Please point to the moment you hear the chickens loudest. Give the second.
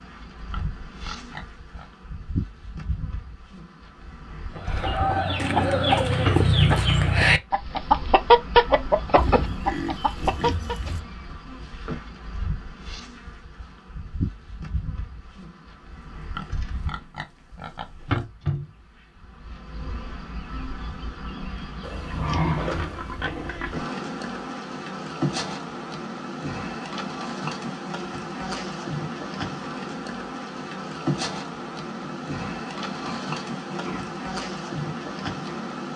8 s.